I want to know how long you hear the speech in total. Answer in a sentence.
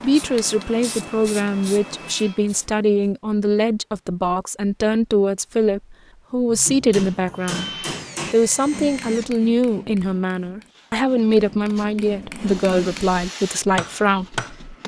The speech can be heard for 14 seconds in total.